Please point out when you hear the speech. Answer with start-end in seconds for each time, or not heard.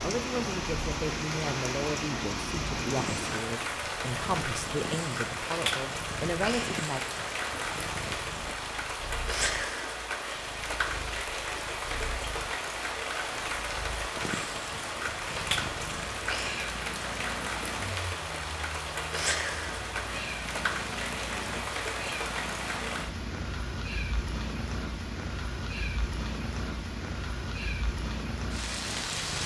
0.0-7.0.